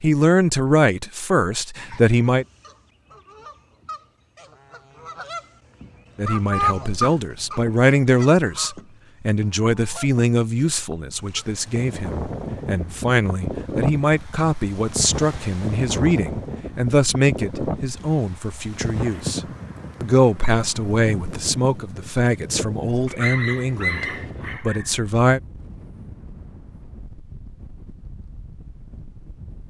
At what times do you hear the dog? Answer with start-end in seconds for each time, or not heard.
23.1-24.9.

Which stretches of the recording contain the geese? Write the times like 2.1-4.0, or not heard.
1.8-11.7.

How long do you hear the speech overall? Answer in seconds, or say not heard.
21 s.